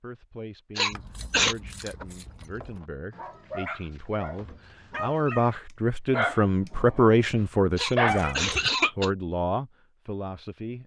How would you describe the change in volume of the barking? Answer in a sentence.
The loudness of the barking goes up, then down.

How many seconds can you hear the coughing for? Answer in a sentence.
You can hear the coughing for 2 seconds altogether.